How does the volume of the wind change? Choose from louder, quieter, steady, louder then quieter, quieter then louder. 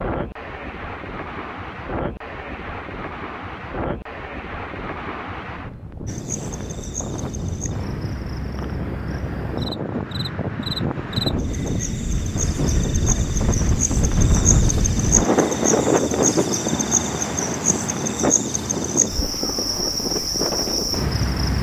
louder then quieter.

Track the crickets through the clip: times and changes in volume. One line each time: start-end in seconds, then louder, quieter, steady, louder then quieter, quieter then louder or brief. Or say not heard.
6.0-21.5 louder.